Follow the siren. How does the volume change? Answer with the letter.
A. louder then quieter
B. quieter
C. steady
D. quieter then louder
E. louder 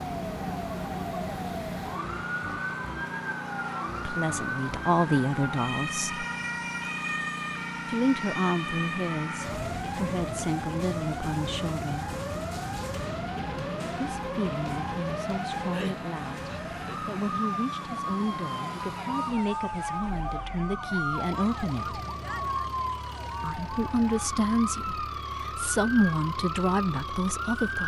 C.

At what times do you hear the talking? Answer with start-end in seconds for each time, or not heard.
4.0-6.2, 7.8-12.2, 13.9-22.0, 23.4-27.8.